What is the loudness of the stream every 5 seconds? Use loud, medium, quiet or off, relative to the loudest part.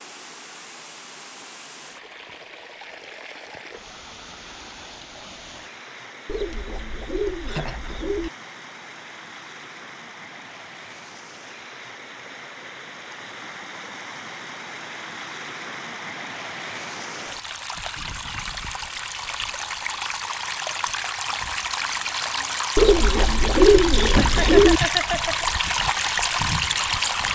quiet, quiet, quiet, medium, loud, loud.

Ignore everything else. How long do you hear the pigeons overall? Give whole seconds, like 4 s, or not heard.
4 s.